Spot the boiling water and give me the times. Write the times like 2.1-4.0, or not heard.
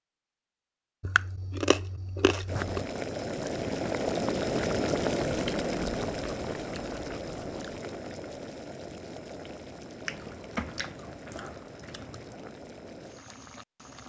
2.5-14.0.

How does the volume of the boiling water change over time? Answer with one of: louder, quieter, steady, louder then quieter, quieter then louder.
quieter.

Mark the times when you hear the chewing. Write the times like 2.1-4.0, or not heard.
1.0-2.9, 5.4-7.8, 10.1-12.3.